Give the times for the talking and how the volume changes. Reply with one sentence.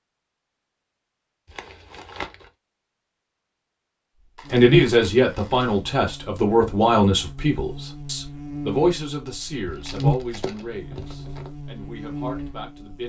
You can hear the talking from 4.5 to 13.0 s, getting quieter.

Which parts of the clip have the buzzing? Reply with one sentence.
The buzzing can be heard from 4.5 to 13.0 s.